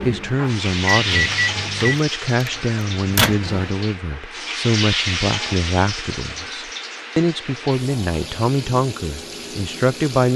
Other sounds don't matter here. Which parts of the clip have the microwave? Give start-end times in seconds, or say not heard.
0.0-3.7.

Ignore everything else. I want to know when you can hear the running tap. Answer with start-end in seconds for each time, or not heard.
0.0-10.3.